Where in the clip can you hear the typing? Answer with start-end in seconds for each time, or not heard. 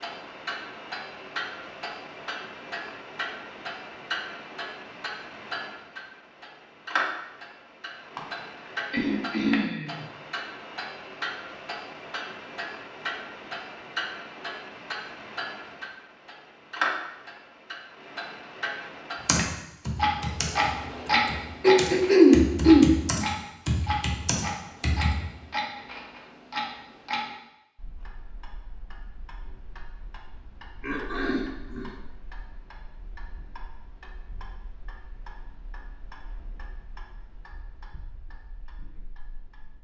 19.1-25.1.